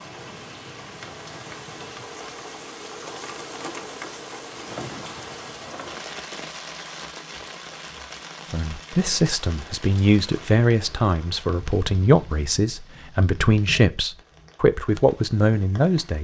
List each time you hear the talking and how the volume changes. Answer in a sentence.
You can hear the talking from 8.5 to 16.1 s, at a steady volume.